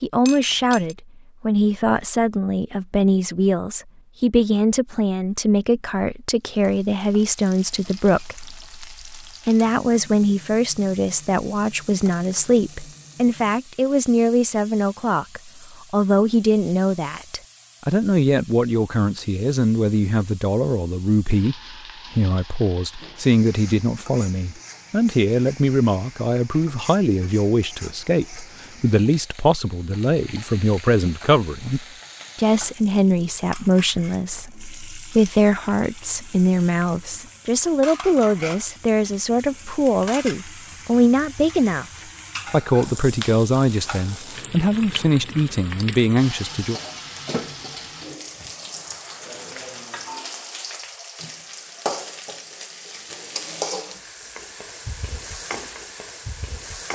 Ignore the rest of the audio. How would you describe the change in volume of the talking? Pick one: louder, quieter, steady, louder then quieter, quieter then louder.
steady.